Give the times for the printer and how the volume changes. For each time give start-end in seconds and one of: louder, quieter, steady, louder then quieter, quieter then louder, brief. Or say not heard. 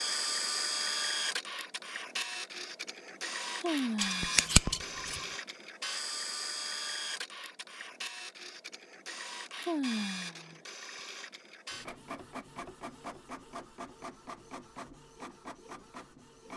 0.0-16.5 quieter.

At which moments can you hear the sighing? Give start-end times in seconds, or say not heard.
3.5-4.5, 9.6-10.6.